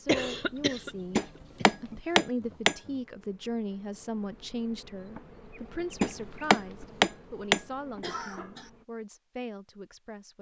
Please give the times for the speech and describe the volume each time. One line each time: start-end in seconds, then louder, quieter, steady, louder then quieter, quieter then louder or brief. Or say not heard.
0.0-1.2 brief
1.8-10.3 quieter.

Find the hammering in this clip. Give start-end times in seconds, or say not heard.
1.1-2.8, 6.0-7.6.